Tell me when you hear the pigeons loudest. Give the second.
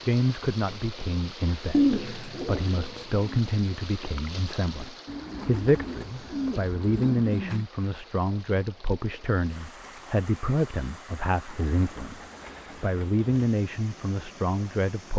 2 s.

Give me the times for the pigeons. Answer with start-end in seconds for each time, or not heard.
1.7-3.4, 5.0-7.7, 11.4-13.2.